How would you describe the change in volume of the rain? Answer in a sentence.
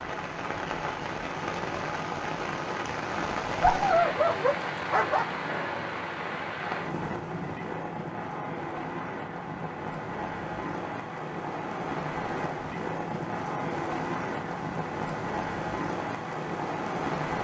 The loudness of the rain stays about the same.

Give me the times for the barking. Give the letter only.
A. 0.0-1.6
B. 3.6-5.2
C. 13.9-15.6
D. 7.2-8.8
B.